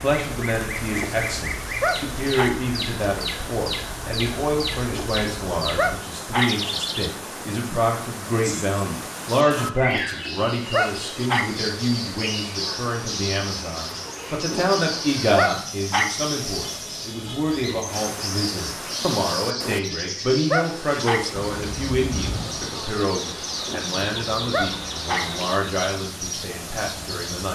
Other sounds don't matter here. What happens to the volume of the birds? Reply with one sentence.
The loudness of the birds stays about the same.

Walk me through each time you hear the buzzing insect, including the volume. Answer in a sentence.
The buzzing insect can't be heard in this clip.